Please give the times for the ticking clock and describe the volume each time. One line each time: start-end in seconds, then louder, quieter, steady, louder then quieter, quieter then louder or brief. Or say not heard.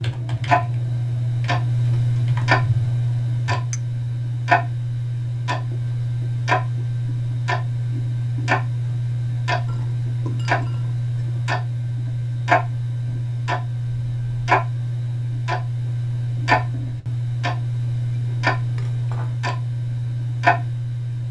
0.0-21.2 steady.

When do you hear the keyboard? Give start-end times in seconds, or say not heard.
0.0-3.5.